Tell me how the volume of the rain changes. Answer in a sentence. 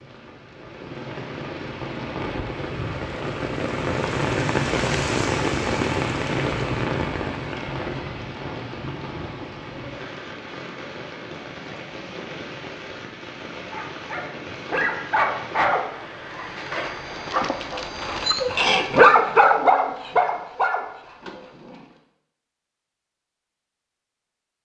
The loudness of the rain goes up, then down.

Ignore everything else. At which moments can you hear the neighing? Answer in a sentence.
You can't hear the neighing here.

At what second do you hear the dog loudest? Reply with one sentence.
The volume of the dog peaks at 19 seconds.